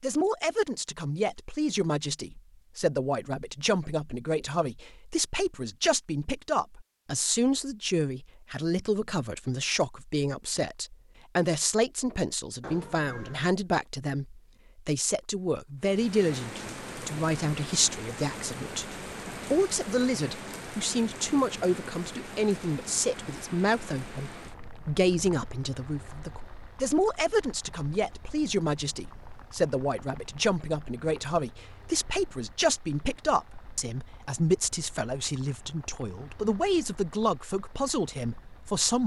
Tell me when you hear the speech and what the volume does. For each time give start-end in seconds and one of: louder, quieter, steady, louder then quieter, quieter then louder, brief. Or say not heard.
0.0-39.0 steady.